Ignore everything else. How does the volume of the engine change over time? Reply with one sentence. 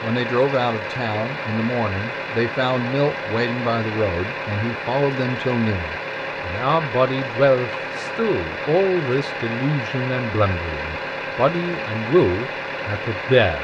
The volume of the engine stays about the same.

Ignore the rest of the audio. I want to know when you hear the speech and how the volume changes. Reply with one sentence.
You can hear the speech from 0.0 to 13.5 s, at a steady volume.